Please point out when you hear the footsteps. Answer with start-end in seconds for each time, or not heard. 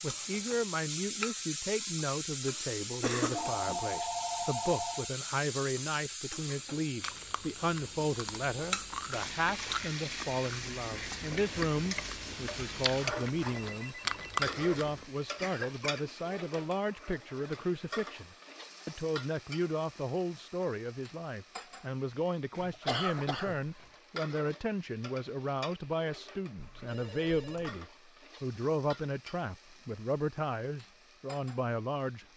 not heard.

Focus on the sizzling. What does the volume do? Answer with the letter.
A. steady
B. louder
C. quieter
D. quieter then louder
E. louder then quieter
C.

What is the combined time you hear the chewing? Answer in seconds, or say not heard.
8 s.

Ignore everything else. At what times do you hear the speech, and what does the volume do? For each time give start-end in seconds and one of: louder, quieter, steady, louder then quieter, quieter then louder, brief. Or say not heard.
0.0-32.2 steady.